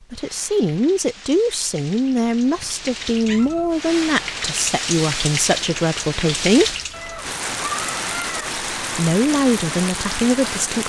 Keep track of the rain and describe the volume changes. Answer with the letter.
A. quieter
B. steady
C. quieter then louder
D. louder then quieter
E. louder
E.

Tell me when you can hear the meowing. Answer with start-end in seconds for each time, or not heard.
2.5-3.7, 6.9-8.6.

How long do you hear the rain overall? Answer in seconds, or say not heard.
11 s.